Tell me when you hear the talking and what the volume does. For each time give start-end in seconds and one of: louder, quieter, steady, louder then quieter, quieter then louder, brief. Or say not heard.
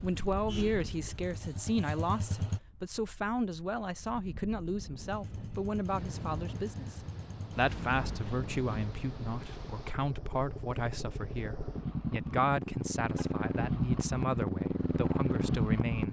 0.0-16.0 steady.